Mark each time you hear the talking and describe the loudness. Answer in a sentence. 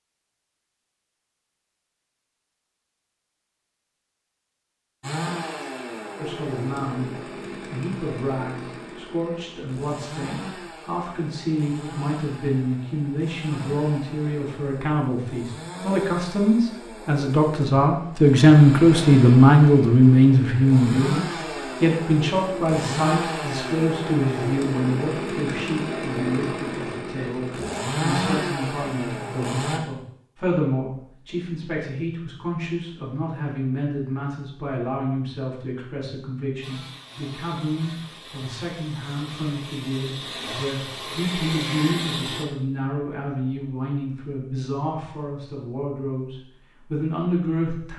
You can hear the talking briefly from 6.2 to 7.1 s; and from 7.7 to 47.9 s, getting louder then quieter.